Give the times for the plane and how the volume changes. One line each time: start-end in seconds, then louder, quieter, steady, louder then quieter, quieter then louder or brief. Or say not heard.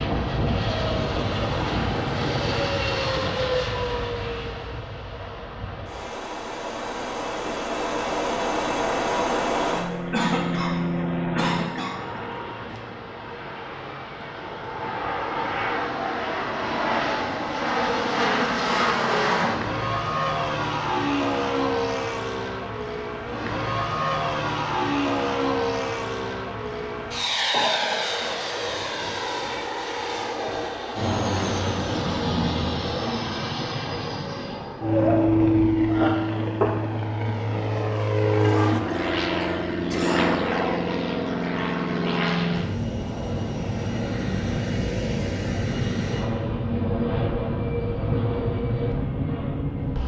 0.0-50.0 steady.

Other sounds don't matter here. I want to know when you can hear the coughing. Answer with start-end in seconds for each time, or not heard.
10.1-12.2, 27.5-28.2, 38.4-40.3.